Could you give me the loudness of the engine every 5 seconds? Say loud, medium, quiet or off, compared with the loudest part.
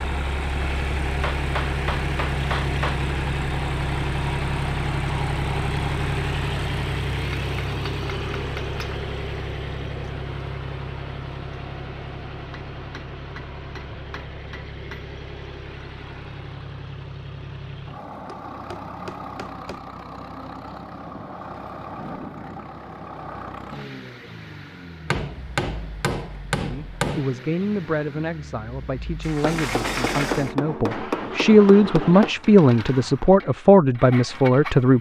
loud, loud, medium, medium, medium, quiet, medium.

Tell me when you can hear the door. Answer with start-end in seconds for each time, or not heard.
29.2-30.6.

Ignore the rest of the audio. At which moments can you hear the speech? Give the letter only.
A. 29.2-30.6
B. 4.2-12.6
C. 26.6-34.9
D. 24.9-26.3
C.